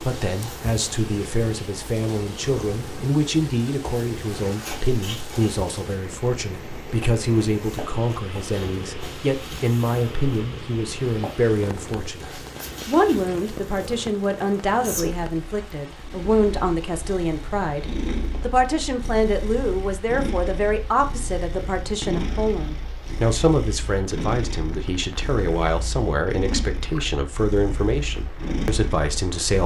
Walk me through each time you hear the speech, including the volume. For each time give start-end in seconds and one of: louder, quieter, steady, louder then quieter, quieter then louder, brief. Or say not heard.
0.0-29.6 steady.